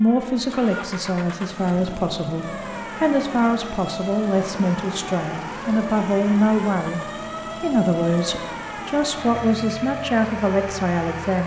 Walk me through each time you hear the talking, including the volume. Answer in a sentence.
You can hear the talking from 0.0 to 11.4 s, at a steady volume.